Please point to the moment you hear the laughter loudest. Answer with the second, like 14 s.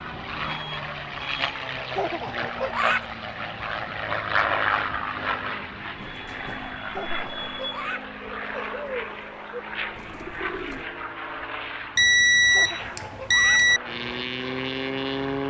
3 s.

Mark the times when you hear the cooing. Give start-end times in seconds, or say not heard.
8.2-10.9.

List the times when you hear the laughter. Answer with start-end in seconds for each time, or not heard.
1.9-3.0, 6.9-8.1, 12.5-13.7.